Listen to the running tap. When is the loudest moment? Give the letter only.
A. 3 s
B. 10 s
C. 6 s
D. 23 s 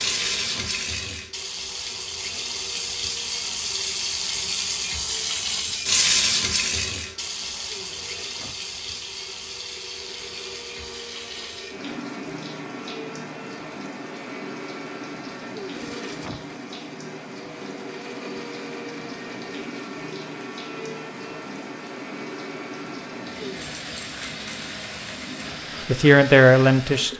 C.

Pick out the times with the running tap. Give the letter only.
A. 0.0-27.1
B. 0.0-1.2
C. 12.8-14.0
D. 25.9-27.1
A.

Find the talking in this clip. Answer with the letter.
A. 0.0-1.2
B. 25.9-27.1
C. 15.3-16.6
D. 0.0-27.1
B.